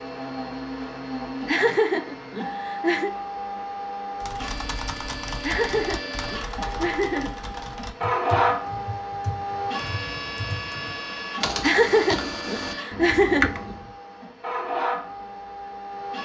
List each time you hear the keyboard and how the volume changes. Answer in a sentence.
You can hear the keyboard from 4.2 to 13.9 s, getting louder.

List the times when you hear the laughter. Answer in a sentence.
You can hear the laughter from 1.4 to 3.1 s, from 5.4 to 7.5 s and from 11.6 to 13.8 s.